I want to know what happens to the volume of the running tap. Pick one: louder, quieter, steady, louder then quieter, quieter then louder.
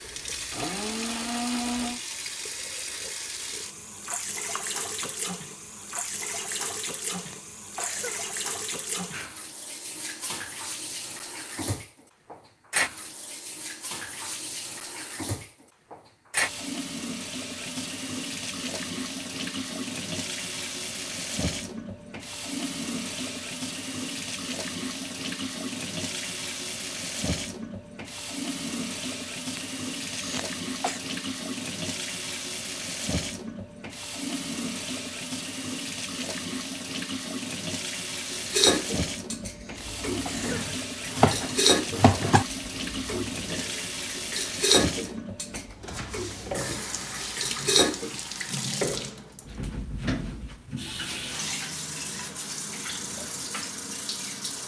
steady.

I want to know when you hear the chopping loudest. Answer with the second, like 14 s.
41 s.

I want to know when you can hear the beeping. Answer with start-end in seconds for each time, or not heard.
not heard.